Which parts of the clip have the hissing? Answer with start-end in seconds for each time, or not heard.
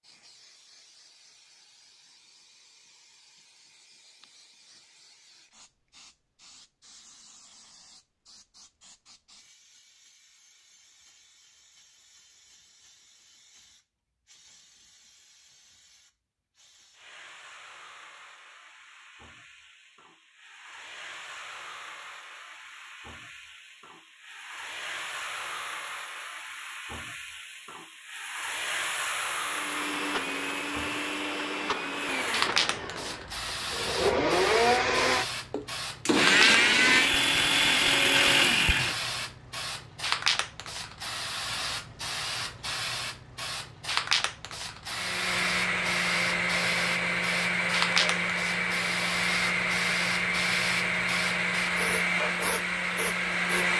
0.0-53.7.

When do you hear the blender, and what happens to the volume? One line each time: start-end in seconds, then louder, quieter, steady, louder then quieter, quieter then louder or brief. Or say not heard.
29.4-39.1 louder
44.9-53.7 steady.